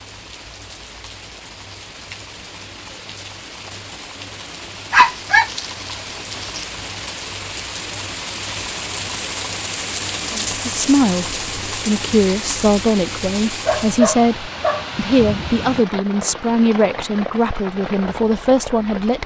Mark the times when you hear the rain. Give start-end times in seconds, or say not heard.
0.0-19.2.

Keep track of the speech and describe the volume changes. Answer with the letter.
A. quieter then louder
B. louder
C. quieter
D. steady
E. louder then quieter
D.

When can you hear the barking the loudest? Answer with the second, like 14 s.
5 s.